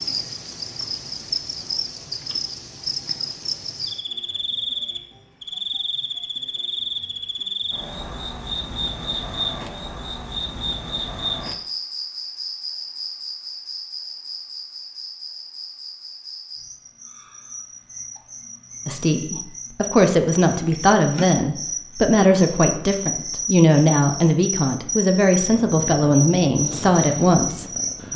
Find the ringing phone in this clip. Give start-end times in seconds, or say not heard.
not heard.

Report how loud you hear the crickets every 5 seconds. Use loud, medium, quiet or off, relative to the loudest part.
loud, loud, loud, medium, loud, loud.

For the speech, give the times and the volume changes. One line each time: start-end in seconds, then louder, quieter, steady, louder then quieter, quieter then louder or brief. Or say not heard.
18.9-27.7 steady.